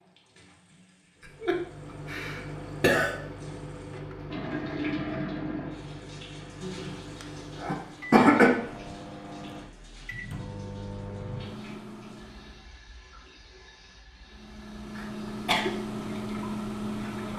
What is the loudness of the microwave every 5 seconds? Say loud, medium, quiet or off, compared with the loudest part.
medium, medium, medium, loud.